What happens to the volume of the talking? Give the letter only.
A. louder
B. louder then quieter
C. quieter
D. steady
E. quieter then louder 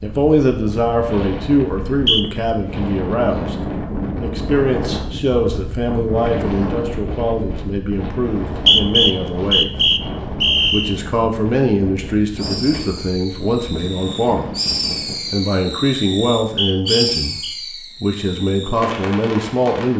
D.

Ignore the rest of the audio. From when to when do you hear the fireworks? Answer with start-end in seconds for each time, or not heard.
12.3-19.9.